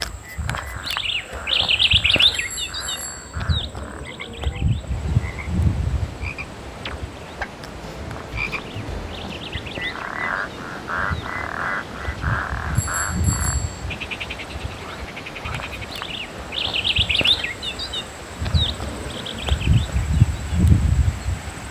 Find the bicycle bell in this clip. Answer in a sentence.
The bicycle bell can be heard from 2.3 to 3.4 s and from 12.8 to 13.8 s.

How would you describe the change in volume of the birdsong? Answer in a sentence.
The loudness of the birdsong goes down, then up.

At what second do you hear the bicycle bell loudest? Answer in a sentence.
The volume of the bicycle bell peaks at 13 seconds.